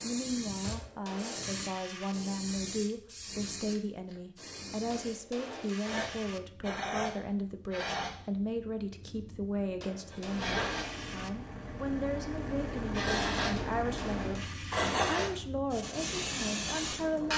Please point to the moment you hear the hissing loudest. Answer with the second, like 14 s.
15 s.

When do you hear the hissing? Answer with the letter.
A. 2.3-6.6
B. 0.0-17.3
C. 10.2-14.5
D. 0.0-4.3
B.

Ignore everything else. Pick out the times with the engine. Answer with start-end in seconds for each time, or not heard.
10.2-14.5.